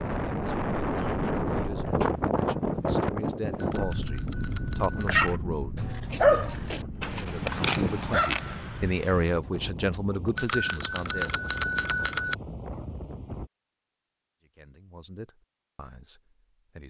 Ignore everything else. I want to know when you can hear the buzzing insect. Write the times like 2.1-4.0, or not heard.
not heard.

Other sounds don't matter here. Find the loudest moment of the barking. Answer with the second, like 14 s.
6 s.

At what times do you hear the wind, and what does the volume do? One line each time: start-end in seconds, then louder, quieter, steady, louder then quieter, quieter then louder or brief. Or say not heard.
0.0-13.5 quieter.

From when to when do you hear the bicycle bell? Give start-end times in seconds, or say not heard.
3.6-5.3, 10.3-12.3.